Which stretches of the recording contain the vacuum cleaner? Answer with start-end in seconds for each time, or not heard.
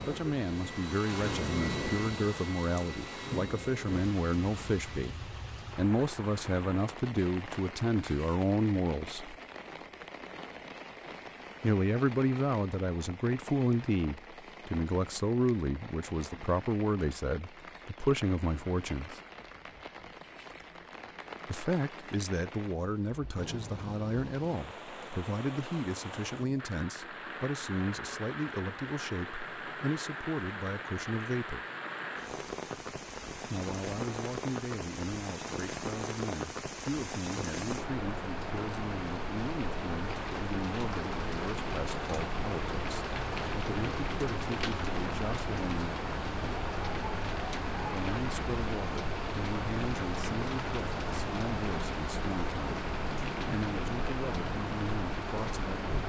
0.0-4.9.